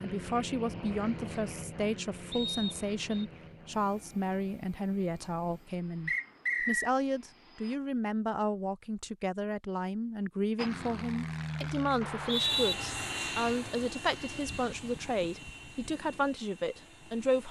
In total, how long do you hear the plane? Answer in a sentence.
The plane can be heard for 15 seconds in total.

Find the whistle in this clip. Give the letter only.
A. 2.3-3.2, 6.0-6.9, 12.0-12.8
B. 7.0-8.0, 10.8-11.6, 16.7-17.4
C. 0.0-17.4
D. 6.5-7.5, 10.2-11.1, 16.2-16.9
A.